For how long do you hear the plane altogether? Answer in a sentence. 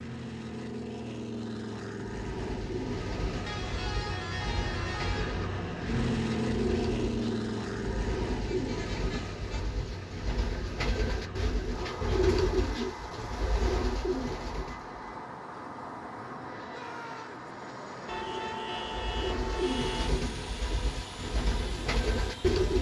You can hear the plane for 23 seconds altogether.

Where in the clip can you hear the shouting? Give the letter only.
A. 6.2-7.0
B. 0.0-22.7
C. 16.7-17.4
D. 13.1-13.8
C.